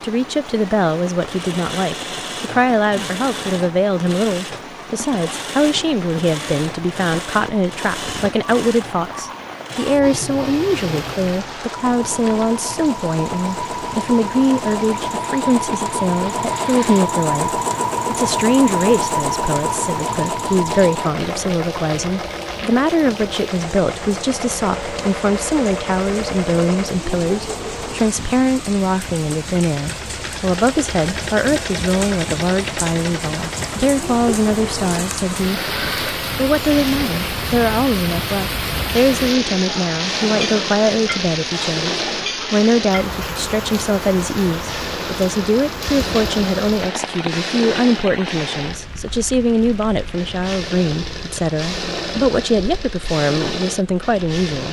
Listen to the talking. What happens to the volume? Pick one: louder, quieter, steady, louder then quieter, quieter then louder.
steady.